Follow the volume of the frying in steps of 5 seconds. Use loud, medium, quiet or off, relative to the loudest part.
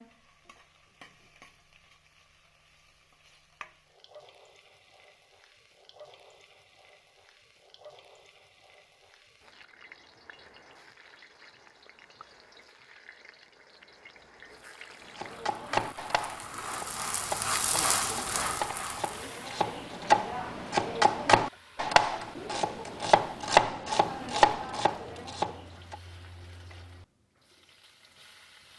quiet, quiet, quiet, loud, quiet, quiet.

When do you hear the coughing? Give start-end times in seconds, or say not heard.
17.6-18.6.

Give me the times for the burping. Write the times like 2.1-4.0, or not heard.
not heard.